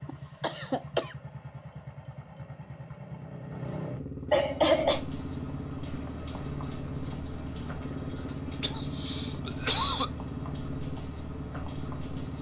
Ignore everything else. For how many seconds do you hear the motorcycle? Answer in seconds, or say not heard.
12 s.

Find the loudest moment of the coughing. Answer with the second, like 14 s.
5 s.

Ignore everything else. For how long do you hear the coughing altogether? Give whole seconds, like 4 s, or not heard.
3 s.